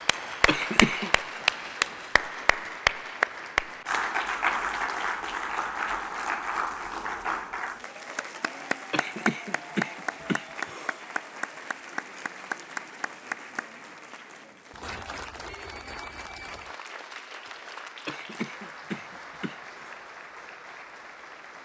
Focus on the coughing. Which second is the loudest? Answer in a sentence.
The volume of the coughing peaks at 1 second.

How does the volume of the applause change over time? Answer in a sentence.
The loudness of the applause goes down.